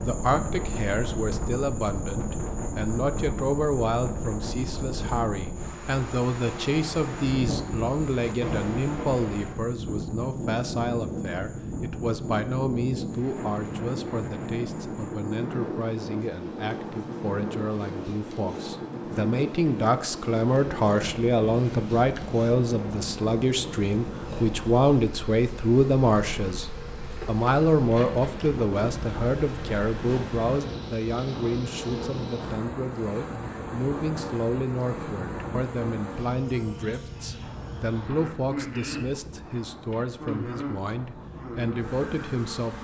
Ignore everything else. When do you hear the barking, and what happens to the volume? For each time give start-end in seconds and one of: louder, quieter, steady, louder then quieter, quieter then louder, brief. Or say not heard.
not heard.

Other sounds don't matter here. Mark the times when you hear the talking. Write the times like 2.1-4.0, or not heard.
0.0-42.8.